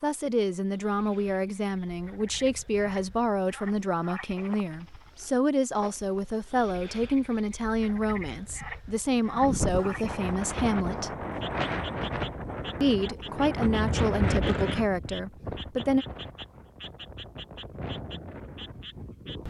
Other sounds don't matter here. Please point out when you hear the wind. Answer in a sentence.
The wind can be heard from 9.2 to 19.4 s.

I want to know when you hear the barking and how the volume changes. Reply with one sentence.
The barking can't be heard in this clip.